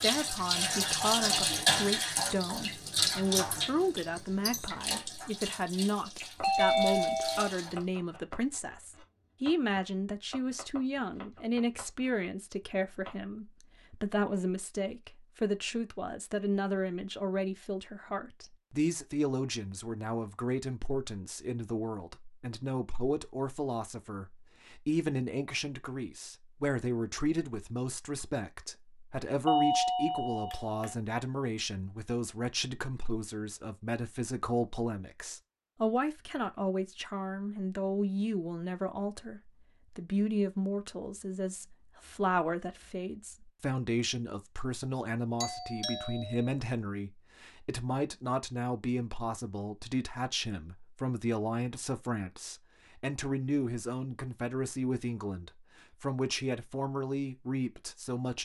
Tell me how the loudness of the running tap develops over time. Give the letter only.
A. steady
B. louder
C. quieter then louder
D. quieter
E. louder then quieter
D.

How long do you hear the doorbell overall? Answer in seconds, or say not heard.
4 s.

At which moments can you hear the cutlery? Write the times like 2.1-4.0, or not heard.
not heard.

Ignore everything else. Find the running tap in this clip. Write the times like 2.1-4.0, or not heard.
0.0-7.8.